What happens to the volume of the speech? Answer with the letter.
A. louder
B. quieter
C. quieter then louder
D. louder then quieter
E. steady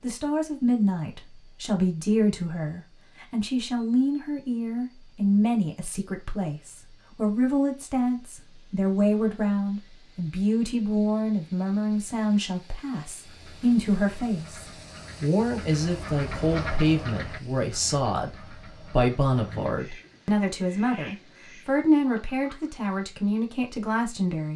E.